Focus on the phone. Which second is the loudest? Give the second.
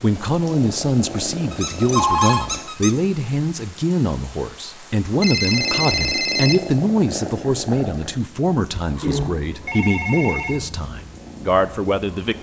2 s.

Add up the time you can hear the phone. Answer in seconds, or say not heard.
4 s.